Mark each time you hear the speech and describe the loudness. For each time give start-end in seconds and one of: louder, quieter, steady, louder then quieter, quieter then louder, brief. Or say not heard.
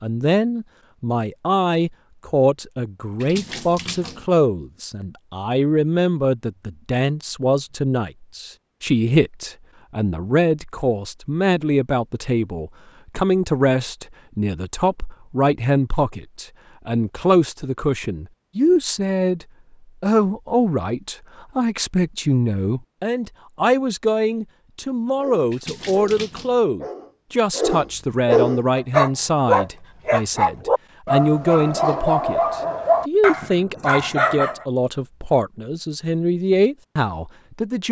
0.0-37.8 steady.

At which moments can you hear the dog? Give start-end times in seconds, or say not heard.
25.1-34.6.